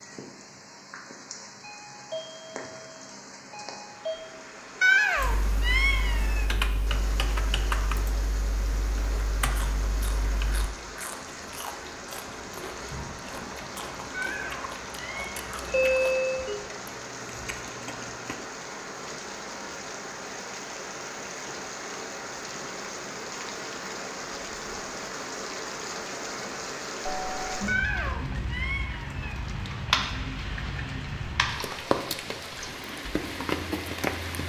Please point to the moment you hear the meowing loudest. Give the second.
5 s.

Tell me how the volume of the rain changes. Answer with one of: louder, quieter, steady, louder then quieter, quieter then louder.
louder.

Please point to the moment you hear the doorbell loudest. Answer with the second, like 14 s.
16 s.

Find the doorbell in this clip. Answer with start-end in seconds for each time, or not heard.
1.6-4.4, 15.7-16.6, 27.1-27.6.